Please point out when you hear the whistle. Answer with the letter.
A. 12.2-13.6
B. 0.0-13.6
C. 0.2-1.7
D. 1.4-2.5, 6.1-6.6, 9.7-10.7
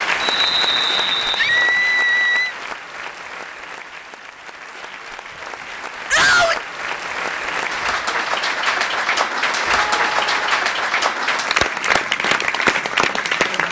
C.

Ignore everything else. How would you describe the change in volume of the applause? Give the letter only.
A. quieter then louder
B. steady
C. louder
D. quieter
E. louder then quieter
A.